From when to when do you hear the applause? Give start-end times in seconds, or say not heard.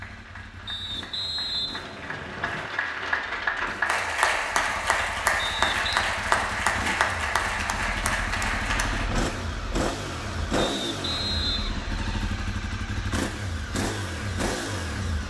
0.0-9.1.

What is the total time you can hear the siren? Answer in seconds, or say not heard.
not heard.